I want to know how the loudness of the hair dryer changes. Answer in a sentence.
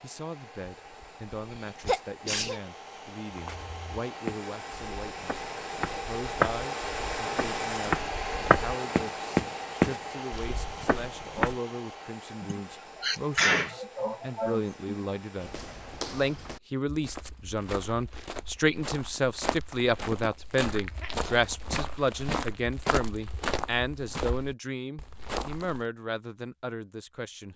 The loudness of the hair dryer goes up, then down.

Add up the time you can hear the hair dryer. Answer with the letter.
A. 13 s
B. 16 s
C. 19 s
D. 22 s
B.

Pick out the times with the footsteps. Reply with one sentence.
You can hear the footsteps from 3.3 to 11.6 s and from 15.3 to 25.9 s.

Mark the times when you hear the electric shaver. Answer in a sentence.
You can't hear the electric shaver here.